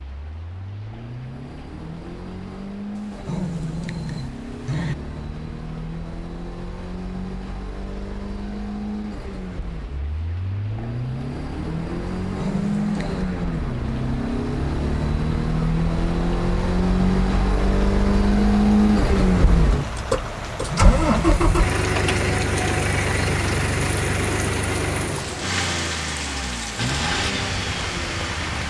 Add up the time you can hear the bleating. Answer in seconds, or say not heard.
not heard.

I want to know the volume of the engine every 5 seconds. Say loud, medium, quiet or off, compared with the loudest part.
quiet, quiet, medium, loud, loud, medium.